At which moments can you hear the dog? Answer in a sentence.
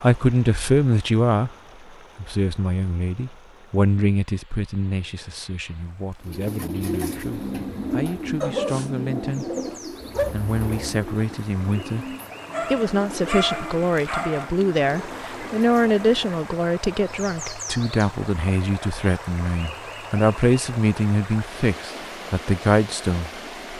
The dog can be heard from 8.4 to 10.3 s and from 12.5 to 14.5 s.